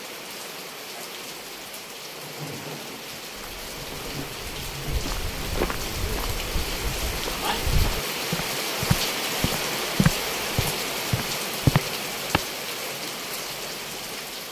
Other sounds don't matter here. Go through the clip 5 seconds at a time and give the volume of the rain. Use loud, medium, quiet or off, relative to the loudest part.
medium, loud, loud.